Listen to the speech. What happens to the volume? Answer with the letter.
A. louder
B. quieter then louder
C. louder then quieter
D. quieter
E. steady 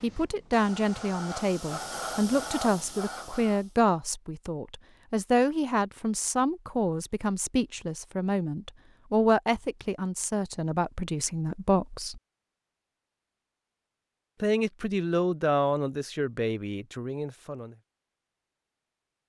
E.